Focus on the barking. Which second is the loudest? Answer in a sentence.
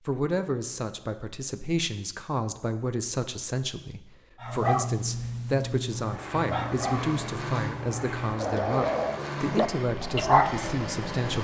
The loudest moment of the barking is at 10 seconds.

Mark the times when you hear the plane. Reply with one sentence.
The plane can be heard from 5.8 to 11.3 s.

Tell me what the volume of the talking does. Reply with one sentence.
The loudness of the talking stays about the same.